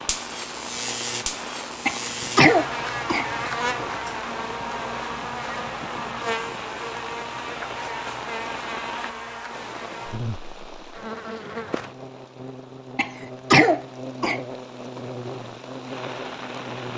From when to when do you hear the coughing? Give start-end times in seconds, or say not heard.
1.9-3.3, 12.9-14.4.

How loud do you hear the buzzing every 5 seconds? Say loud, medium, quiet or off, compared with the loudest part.
loud, loud, medium, medium.